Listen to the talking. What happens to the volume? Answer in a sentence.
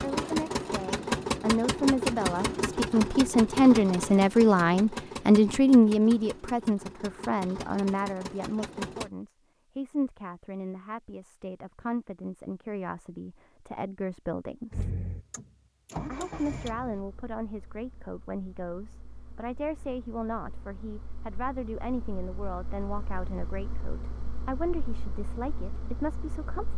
The loudness of the talking goes down.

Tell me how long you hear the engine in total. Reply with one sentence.
The engine can be heard for 21 seconds in total.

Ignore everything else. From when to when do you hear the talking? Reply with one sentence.
You can hear the talking from 0.0 to 14.9 s and from 16.1 to 26.7 s.